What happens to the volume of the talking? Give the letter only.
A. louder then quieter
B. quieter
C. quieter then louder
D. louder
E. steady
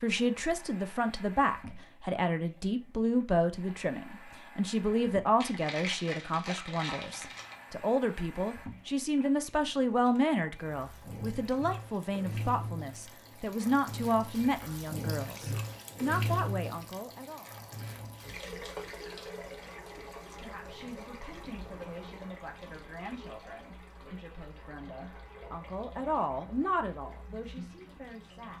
B.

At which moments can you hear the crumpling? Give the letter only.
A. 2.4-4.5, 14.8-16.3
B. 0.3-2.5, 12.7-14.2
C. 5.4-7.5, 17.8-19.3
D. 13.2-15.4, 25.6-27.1
C.